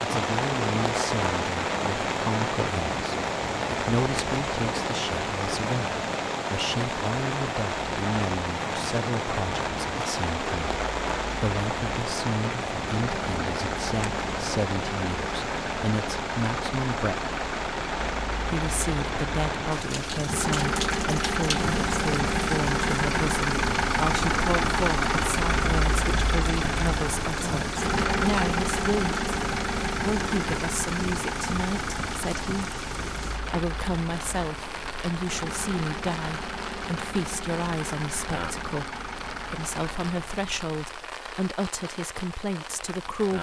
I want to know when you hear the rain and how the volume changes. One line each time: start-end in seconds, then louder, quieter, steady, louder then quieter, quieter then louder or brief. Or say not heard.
0.0-43.3 quieter.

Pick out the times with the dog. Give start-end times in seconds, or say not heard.
not heard.